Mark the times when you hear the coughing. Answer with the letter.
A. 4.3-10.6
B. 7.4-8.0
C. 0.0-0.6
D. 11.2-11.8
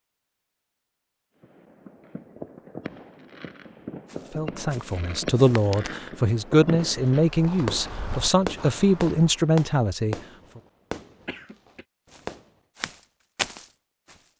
D.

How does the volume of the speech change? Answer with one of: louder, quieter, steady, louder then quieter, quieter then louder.
steady.